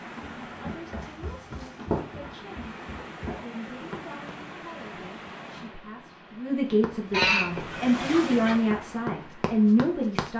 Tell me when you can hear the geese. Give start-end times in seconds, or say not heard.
7.1-8.6.